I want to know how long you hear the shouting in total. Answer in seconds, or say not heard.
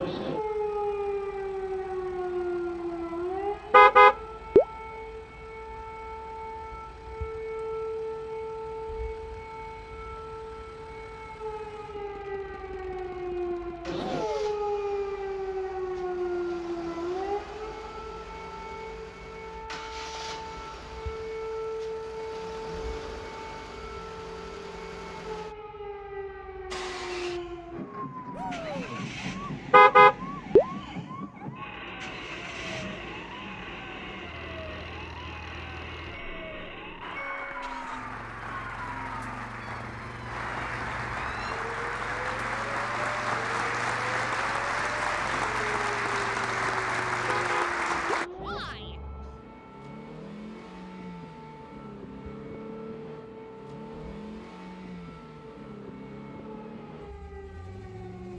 2 s.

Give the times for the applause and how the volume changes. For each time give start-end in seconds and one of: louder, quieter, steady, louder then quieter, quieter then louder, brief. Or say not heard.
37.0-48.3 louder.